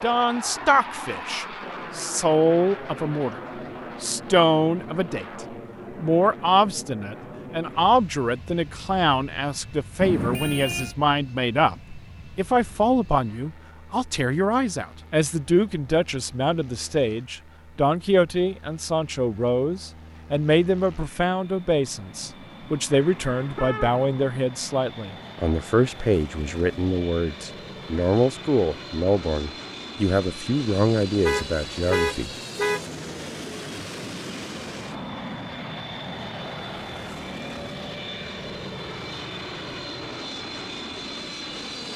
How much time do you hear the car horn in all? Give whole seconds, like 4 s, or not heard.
4 s.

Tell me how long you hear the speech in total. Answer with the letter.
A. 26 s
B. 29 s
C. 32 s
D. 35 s
C.